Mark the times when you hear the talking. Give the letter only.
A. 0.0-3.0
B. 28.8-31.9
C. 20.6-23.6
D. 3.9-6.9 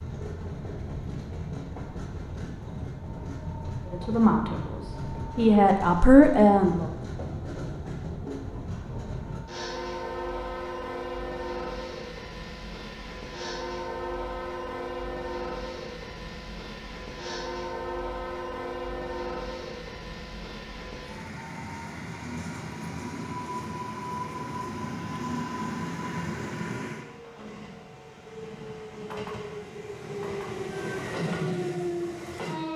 D.